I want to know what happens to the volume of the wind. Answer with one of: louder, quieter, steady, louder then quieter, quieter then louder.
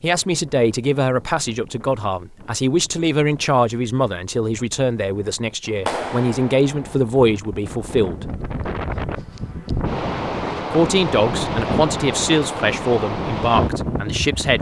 louder.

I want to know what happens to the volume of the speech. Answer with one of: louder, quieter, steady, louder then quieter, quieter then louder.
steady.